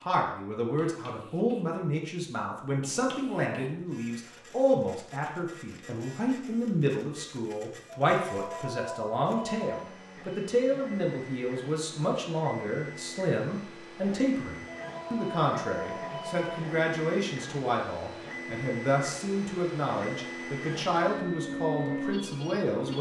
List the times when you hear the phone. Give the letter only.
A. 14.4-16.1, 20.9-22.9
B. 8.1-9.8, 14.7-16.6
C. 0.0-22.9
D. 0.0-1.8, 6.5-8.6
B.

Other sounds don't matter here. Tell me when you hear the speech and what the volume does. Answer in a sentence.
You can hear the speech from 0.0 to 22.9 s, at a steady volume.